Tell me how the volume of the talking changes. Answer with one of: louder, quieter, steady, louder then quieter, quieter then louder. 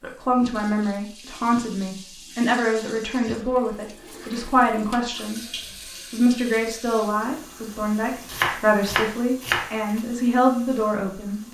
steady.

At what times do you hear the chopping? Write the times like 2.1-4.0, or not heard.
8.2-10.0.